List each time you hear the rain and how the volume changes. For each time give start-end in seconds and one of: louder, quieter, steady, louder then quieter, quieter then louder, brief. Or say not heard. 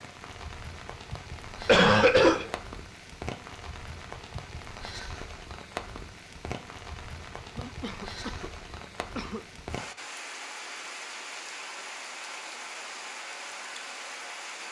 0.0-14.6 steady.